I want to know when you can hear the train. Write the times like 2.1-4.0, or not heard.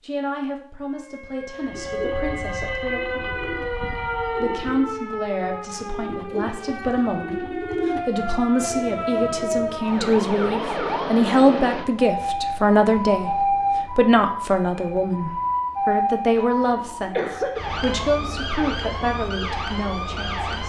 1.6-4.9.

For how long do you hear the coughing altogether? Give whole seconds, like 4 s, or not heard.
2 s.